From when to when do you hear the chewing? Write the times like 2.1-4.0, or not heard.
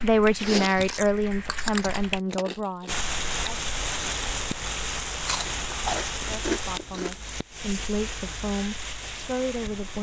0.3-3.0, 5.2-7.2.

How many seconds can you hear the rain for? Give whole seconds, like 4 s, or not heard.
7 s.